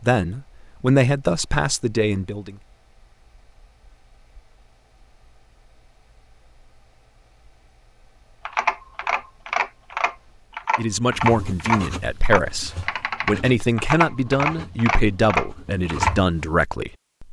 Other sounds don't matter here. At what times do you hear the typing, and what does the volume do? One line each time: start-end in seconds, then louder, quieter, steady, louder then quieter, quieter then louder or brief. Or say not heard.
8.4-16.2 steady.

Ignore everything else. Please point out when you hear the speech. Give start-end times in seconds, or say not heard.
0.0-2.5, 10.8-17.2.